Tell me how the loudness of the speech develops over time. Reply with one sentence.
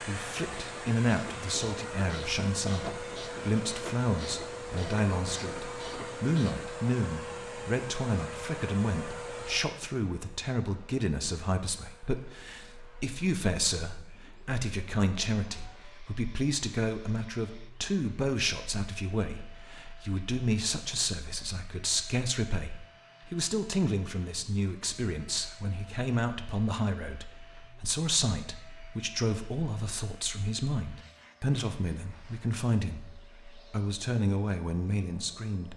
The volume of the speech stays about the same.